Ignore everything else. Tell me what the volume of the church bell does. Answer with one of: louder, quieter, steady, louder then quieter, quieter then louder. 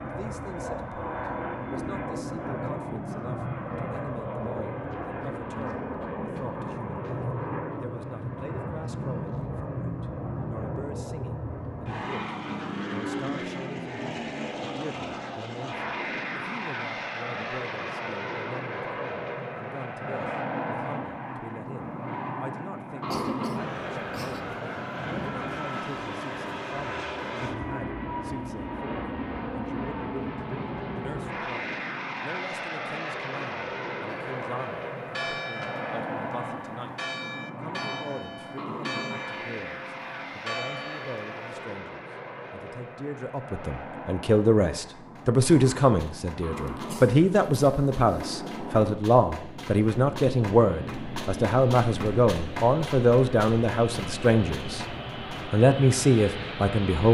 steady.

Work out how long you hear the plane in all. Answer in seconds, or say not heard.
57 s.